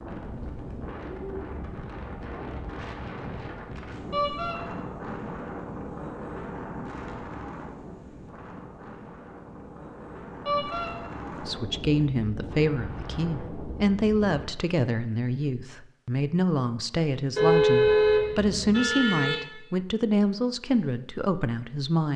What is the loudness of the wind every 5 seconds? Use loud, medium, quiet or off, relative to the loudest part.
loud, loud, loud, off, off.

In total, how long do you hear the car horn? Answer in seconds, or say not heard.
3 s.